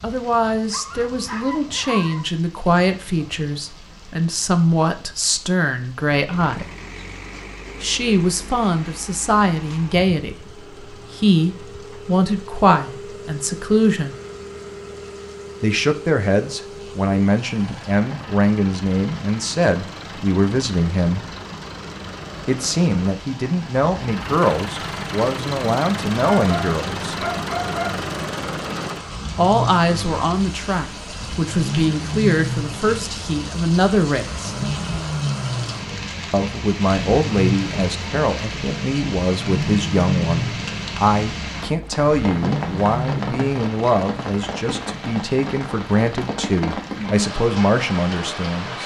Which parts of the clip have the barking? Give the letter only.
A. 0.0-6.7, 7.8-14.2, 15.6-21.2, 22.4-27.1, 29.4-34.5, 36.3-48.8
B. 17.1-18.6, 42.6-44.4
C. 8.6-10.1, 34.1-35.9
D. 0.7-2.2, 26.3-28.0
D.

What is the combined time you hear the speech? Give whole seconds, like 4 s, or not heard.
41 s.